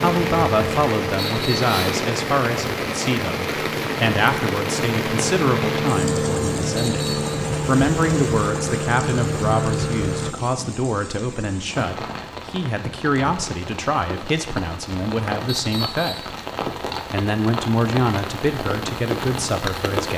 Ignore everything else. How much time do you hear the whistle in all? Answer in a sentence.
The whistle can be heard for 2 seconds in total.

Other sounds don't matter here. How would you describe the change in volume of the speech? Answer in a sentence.
The loudness of the speech stays about the same.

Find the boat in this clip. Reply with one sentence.
The boat can be heard from 0.0 to 10.3 s.